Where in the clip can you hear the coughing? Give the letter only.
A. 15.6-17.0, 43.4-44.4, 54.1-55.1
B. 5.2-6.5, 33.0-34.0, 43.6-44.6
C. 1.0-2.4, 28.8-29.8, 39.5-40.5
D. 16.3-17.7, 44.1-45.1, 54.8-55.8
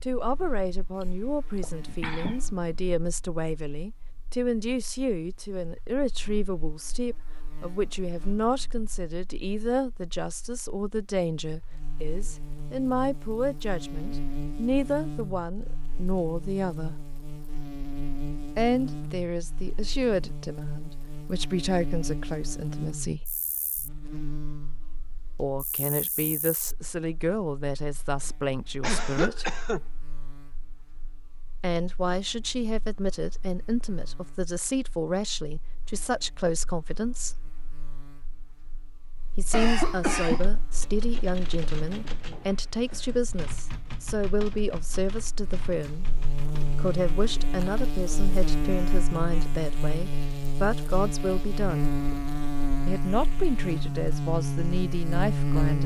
C.